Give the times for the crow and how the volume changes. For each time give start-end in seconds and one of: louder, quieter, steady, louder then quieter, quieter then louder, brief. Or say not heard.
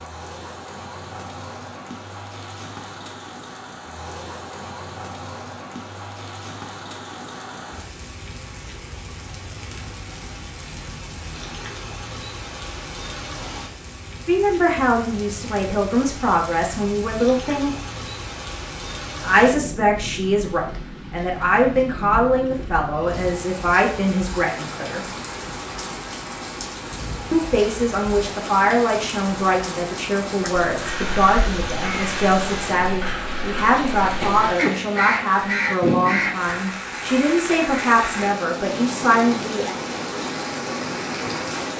30.4-36.6 louder.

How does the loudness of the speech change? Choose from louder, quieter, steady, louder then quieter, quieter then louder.
steady.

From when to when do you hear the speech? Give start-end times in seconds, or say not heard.
14.2-17.7, 19.2-25.0, 27.3-39.7.